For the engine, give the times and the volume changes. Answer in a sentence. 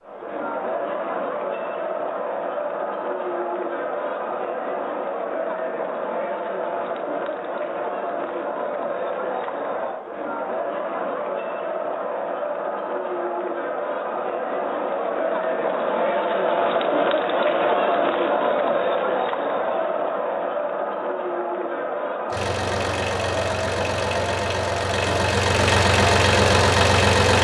The engine can be heard from 22.3 to 27.3 s, getting louder.